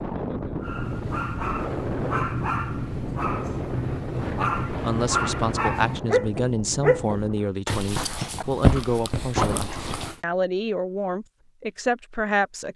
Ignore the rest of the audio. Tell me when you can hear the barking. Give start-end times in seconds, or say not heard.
0.6-10.2.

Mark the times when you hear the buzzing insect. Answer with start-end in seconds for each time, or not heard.
not heard.